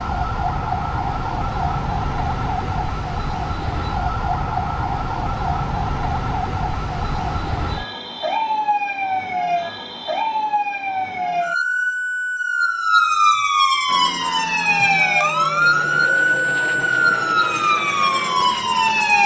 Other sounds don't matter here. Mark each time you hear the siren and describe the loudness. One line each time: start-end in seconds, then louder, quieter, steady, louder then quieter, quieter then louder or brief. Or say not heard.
0.0-19.2 louder.